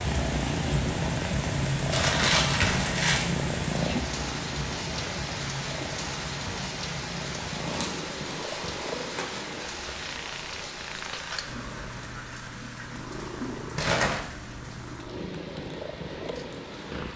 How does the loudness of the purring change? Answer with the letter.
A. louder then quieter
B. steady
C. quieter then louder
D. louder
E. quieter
E.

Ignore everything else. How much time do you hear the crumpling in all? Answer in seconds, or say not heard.
4 s.